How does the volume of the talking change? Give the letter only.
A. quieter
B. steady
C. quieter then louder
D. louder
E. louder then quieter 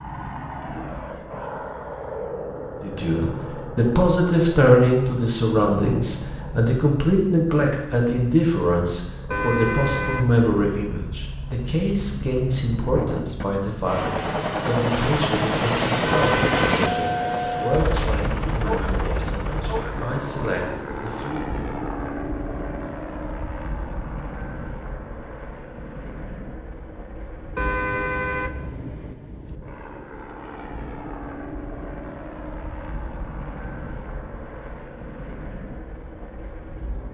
A.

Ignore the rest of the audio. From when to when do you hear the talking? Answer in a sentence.
The talking can be heard from 2.8 to 21.5 s.